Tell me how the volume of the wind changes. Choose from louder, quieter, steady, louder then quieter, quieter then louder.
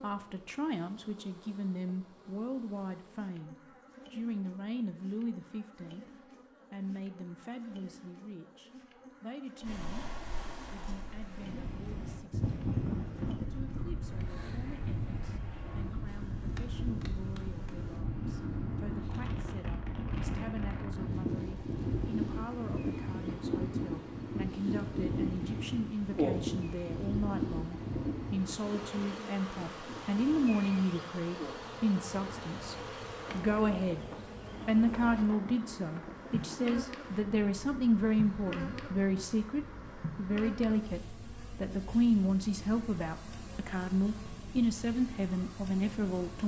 quieter.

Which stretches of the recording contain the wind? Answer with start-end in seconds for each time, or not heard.
9.6-46.4.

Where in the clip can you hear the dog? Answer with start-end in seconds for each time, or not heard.
not heard.